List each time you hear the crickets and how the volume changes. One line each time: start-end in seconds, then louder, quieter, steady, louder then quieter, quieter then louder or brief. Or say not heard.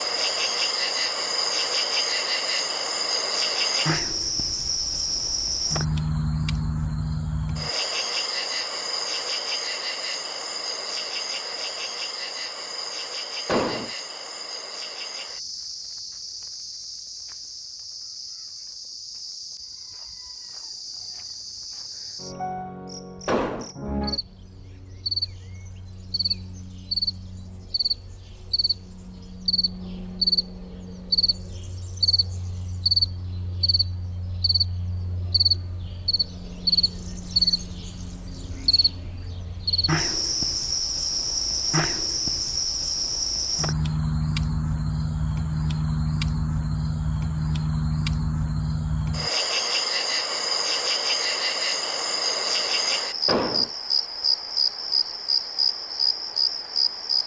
0.0-57.2 quieter then louder.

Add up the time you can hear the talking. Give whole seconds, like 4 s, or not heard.
not heard.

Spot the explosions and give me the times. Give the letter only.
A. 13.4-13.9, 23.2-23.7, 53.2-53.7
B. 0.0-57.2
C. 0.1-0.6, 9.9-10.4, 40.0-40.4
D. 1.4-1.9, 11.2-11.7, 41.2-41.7
A.